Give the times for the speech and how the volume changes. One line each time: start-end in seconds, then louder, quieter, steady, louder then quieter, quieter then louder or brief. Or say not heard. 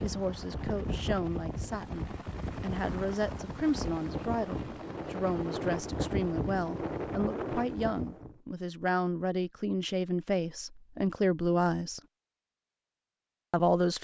0.0-12.0 louder
13.5-13.9 brief.